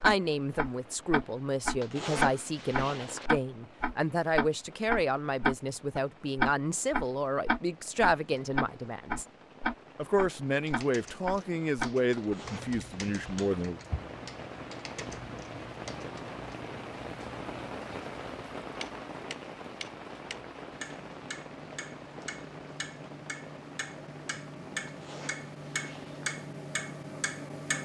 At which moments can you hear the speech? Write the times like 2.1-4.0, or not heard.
0.0-9.2, 9.9-13.8.